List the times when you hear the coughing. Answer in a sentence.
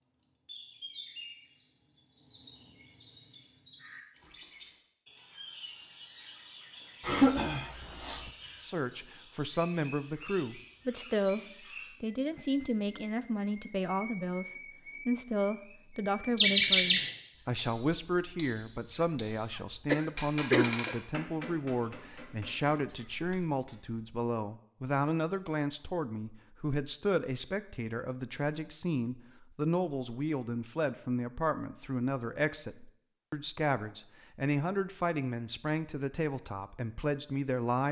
The coughing can be heard from 7.0 to 8.3 s and from 19.6 to 20.9 s.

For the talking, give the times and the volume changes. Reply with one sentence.
The talking can be heard from 8.6 to 37.8 s, at a steady volume.